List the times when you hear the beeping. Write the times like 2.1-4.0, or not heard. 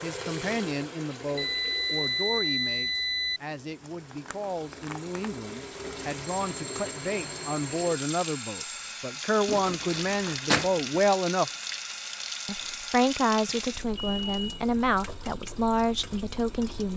1.4-3.4, 6.4-9.0, 13.9-14.7.